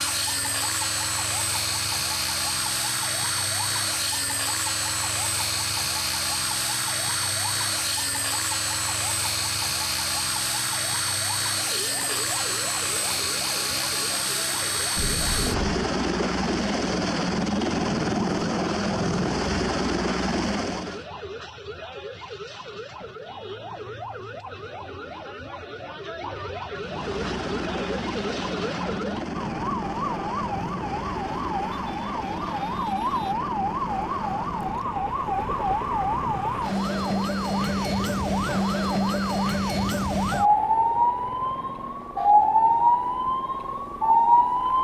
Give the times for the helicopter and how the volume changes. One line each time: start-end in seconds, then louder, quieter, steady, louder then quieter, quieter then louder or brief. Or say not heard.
0.0-21.1 steady
26.7-44.7 quieter.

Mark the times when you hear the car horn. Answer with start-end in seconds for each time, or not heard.
14.9-15.7.